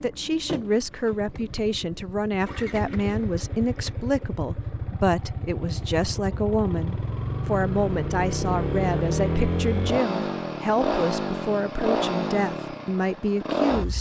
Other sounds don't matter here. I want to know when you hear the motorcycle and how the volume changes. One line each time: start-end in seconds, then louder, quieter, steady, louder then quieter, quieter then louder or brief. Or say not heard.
0.0-13.9 louder.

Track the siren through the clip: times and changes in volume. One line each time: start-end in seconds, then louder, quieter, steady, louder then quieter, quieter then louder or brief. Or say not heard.
not heard.